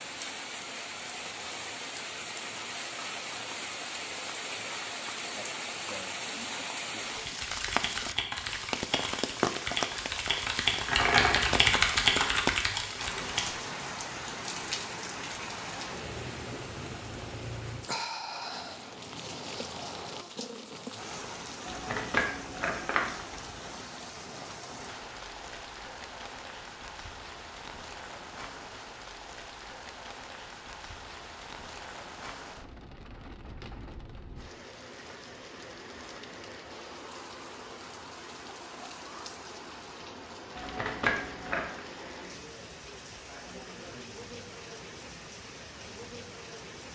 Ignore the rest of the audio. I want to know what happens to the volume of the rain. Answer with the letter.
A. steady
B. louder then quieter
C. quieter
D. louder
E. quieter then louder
C.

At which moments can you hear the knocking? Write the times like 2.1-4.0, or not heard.
not heard.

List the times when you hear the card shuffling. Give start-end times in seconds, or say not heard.
10.7-12.4, 21.6-23.1, 40.5-41.8.